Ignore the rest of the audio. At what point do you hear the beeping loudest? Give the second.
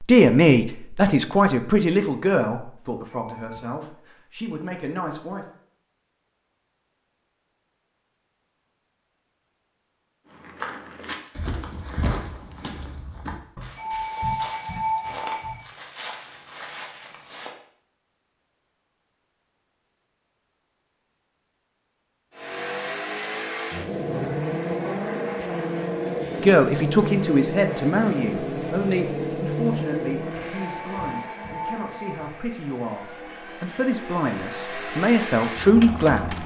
15 s.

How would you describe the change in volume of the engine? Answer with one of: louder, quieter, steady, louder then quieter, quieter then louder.
quieter then louder.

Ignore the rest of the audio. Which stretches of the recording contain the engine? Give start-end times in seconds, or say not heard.
22.4-36.4.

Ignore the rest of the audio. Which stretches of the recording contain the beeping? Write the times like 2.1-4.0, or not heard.
3.0-3.6, 13.6-15.6, 30.3-32.4.